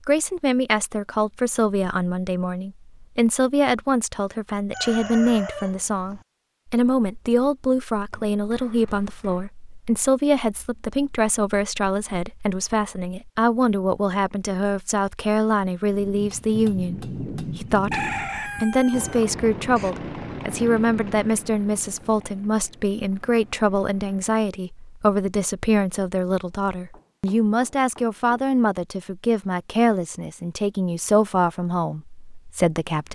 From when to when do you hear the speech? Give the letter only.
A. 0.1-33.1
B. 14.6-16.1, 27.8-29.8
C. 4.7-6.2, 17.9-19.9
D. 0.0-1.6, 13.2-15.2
A.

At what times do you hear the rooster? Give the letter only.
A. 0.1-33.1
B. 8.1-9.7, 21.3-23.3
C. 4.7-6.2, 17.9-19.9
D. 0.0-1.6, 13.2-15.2
C.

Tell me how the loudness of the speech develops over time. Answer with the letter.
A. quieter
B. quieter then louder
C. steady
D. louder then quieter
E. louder
C.